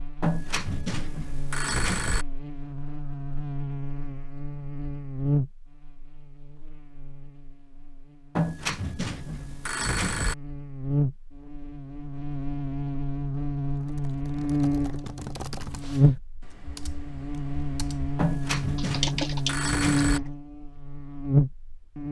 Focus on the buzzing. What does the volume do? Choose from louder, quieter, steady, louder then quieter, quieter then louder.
louder.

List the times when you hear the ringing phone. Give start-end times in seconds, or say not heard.
0.2-2.2, 8.3-10.3, 18.1-20.2.